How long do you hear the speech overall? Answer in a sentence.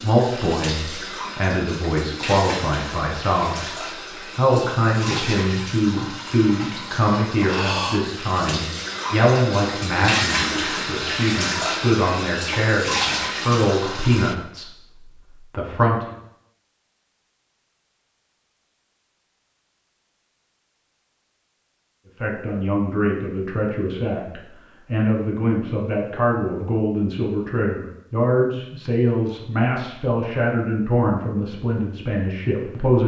The speech can be heard for 27 seconds in total.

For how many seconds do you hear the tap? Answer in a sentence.
The tap can be heard for 14 seconds in total.